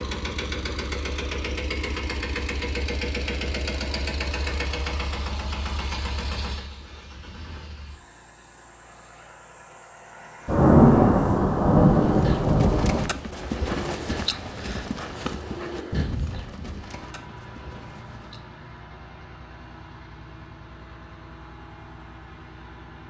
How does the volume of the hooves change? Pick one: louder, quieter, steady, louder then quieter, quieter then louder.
quieter.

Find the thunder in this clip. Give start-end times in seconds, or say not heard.
10.4-13.2.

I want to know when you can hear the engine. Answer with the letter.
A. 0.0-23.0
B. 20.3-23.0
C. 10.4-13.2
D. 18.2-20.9
A.